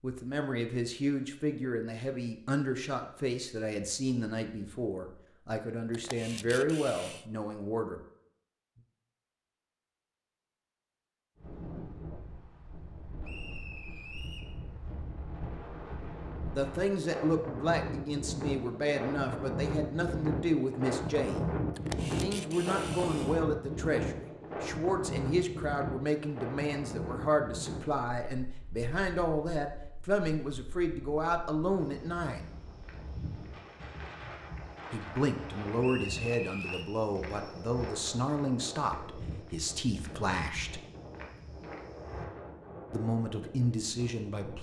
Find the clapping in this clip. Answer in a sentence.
The clapping can't be heard in this clip.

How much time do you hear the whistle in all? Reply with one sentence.
The whistle can be heard for 2 seconds in total.